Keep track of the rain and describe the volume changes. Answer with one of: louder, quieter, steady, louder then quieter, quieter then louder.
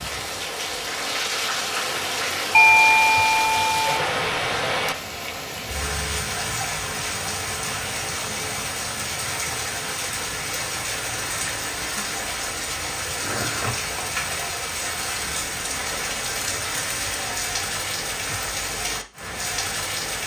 steady.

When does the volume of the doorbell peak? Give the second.
3 s.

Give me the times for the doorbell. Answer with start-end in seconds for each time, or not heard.
2.5-4.0.